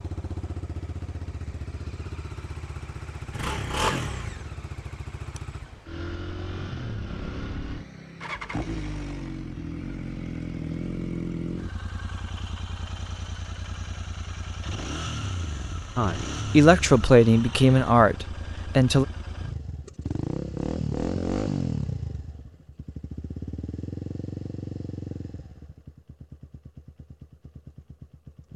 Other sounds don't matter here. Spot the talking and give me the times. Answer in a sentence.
The talking can be heard from 15.9 to 19.1 s.